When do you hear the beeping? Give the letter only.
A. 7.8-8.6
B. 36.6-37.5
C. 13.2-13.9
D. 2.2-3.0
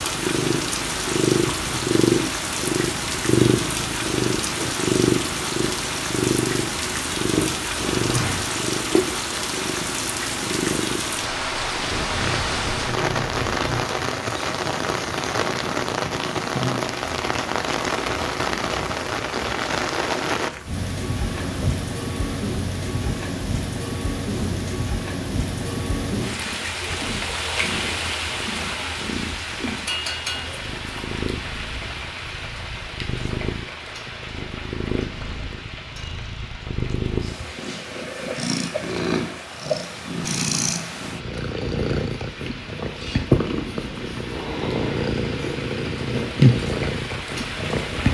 A.